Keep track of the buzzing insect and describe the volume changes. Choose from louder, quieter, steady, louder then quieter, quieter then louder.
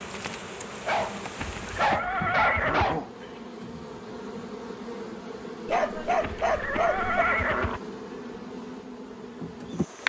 steady.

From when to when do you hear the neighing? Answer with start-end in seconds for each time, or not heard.
1.4-3.0, 6.2-7.8.